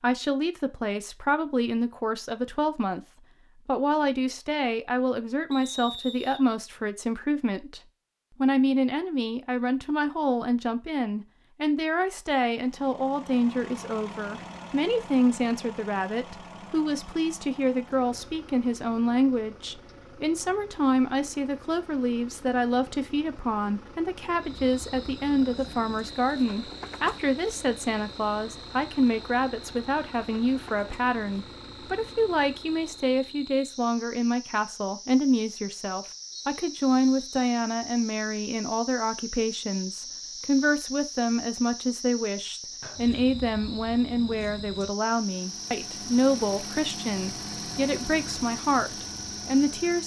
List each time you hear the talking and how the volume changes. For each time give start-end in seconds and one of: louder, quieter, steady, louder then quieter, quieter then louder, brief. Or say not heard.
0.0-7.8 steady
8.4-50.0 steady.